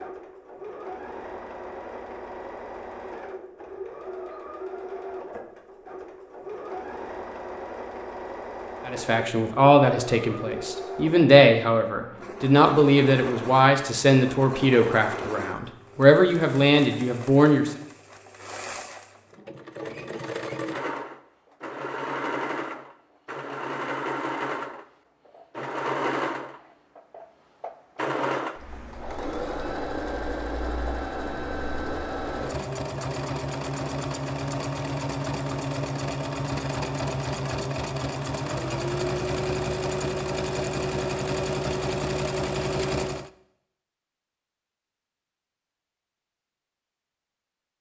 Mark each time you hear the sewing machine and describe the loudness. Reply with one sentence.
The sewing machine can be heard from 0.0 to 43.3 s, getting louder.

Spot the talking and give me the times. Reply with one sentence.
You can hear the talking from 8.8 to 17.7 s.